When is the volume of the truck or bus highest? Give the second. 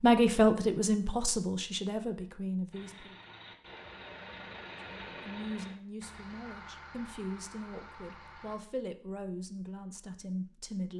5 s.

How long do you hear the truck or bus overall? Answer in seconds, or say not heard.
6 s.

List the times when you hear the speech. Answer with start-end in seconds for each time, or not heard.
0.0-3.1, 5.0-10.9.